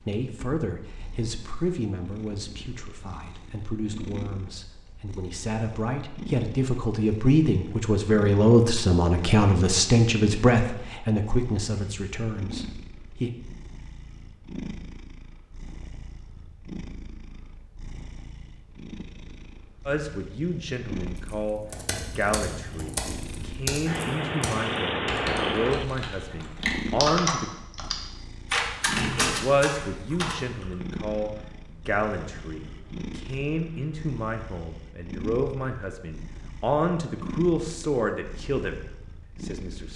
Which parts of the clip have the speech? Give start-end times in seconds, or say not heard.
0.0-13.3, 19.9-27.5, 29.2-38.8, 39.4-39.9.